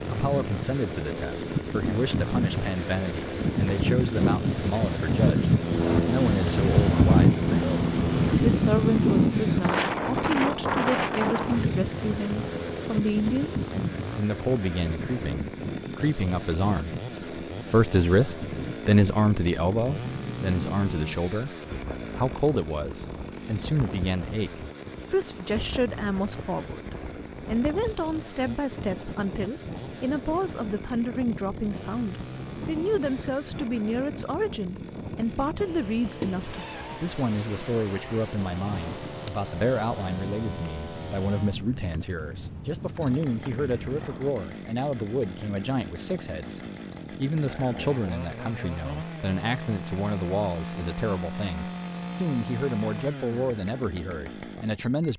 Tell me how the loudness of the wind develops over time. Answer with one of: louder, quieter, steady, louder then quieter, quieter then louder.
quieter.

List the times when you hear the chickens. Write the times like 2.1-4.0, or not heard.
not heard.